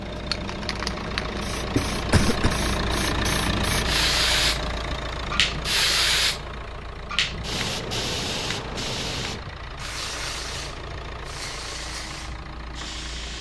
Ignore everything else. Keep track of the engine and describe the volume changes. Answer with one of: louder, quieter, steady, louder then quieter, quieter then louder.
quieter.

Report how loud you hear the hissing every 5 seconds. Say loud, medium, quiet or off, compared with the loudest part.
loud, loud, medium.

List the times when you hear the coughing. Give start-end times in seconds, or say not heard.
1.8-2.6.